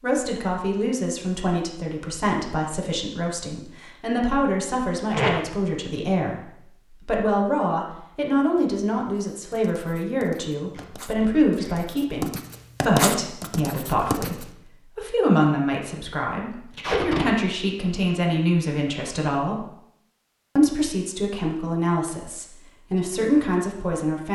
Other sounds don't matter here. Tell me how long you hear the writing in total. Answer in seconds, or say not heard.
6 s.